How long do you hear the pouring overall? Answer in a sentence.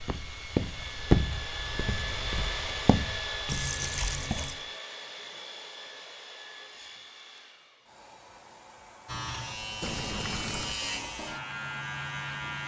You can hear the pouring for 2 seconds altogether.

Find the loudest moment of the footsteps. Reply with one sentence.
The volume of the footsteps peaks at 1 second.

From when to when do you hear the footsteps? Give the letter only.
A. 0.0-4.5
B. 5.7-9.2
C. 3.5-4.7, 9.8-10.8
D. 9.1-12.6
A.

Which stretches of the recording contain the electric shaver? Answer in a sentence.
The electric shaver can be heard from 9.1 to 12.6 s.